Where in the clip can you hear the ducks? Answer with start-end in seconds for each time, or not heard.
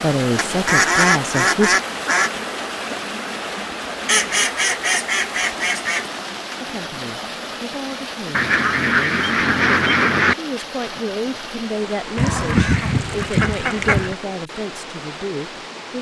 0.3-2.3, 4.0-6.1, 8.3-10.3, 12.2-14.2.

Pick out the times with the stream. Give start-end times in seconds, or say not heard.
0.0-15.9.